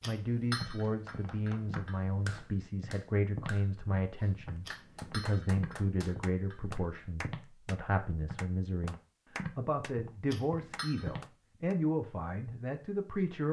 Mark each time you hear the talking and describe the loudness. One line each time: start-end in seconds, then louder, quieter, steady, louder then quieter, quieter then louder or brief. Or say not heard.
0.1-13.4 steady.